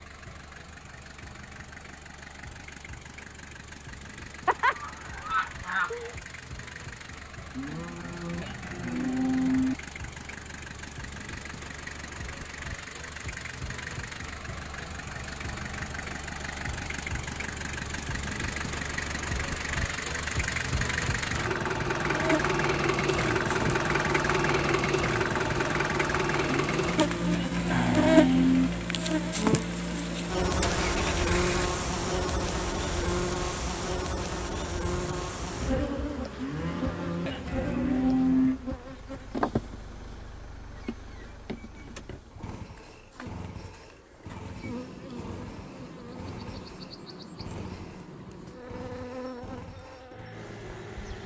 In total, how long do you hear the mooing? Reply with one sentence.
The mooing can be heard for 7 seconds in total.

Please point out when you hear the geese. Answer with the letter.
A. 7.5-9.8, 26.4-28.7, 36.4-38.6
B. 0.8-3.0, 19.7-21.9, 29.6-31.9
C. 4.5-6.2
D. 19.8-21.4
C.